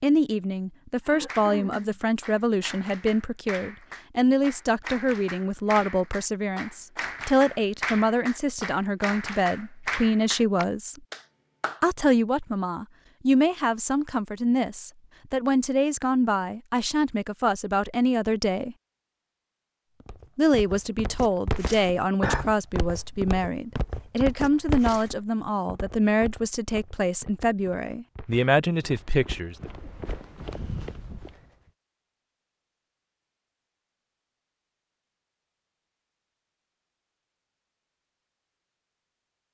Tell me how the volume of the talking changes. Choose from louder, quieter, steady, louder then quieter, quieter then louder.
steady.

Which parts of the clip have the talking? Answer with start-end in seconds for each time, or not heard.
0.0-11.0, 11.8-18.8, 20.4-29.7.